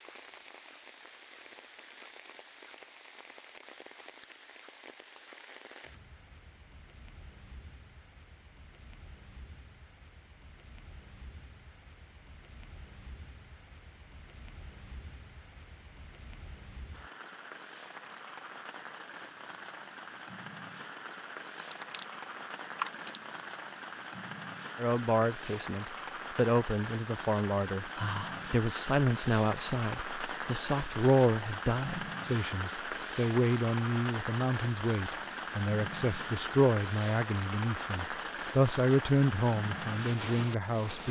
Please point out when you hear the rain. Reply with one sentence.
You can hear the rain from 0.0 to 41.0 s.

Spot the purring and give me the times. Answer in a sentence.
You can't hear the purring here.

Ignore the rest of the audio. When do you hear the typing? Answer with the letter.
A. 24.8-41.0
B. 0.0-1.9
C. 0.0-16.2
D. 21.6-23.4
D.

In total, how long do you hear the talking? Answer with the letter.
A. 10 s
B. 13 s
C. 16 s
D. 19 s
C.